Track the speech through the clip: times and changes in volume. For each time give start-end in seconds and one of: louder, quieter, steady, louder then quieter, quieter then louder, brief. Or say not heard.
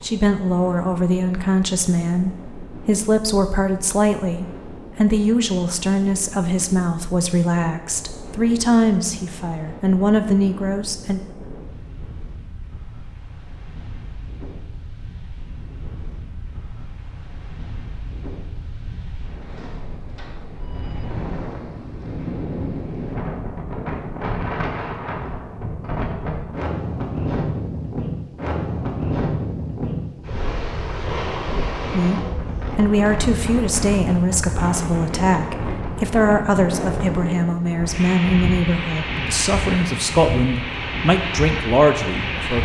0.0-11.2 steady
31.9-42.6 steady.